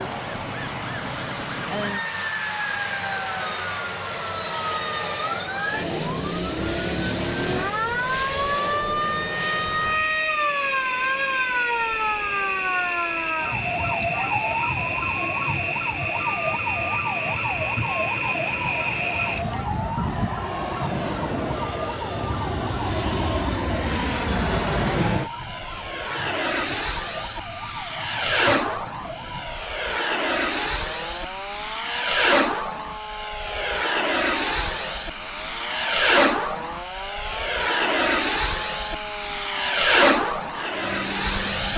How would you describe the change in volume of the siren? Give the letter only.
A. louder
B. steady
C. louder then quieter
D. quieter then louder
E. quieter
E.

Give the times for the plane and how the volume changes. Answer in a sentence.
You can hear the plane from 0.0 to 41.7 s, getting louder.